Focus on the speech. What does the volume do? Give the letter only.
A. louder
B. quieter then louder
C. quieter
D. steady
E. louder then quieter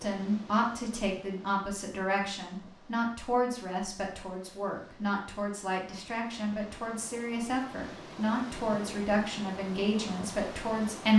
D.